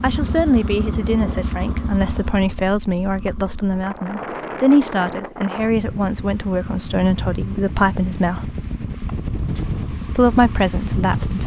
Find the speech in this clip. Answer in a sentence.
You can hear the speech from 0.0 to 8.4 s and from 10.2 to 11.4 s.